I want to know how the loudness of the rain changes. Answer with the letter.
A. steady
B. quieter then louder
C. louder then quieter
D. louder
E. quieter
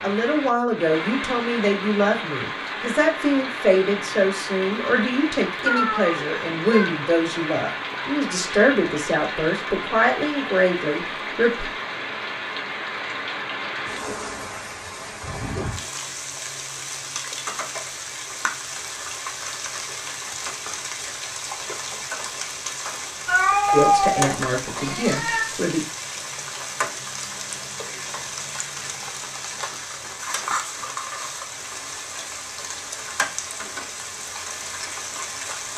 A.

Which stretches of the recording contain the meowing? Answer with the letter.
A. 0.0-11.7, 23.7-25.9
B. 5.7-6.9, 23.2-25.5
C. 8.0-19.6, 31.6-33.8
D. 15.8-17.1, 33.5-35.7
B.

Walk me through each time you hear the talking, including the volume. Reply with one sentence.
The talking can be heard from 0.0 to 11.7 s, at a steady volume; and briefly from 23.7 to 25.9 s.